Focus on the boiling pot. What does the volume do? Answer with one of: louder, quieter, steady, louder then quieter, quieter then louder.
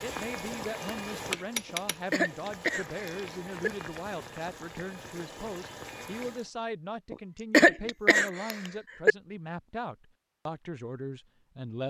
quieter.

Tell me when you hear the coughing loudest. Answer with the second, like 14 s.
8 s.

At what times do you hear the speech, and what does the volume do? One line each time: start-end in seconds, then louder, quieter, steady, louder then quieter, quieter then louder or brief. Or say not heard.
0.0-11.8 steady.